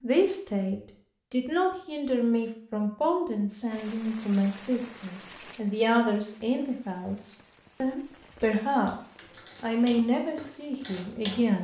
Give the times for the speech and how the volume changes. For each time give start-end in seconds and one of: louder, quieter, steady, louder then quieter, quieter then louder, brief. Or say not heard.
0.0-11.5 steady.